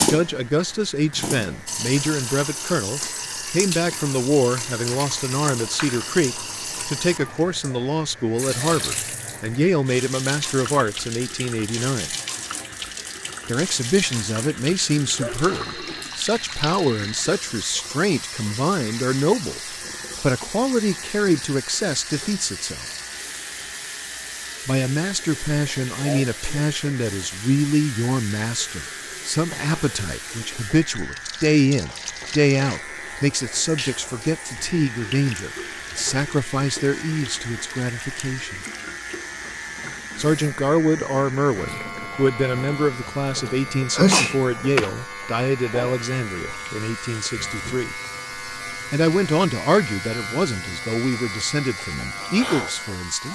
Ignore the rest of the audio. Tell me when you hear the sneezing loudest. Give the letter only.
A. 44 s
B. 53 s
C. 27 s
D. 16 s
A.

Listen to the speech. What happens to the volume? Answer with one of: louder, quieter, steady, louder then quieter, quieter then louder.
steady.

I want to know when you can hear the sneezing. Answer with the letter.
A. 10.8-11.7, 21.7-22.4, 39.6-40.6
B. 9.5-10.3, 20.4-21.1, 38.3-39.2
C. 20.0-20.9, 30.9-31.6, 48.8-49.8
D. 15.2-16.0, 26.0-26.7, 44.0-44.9
D.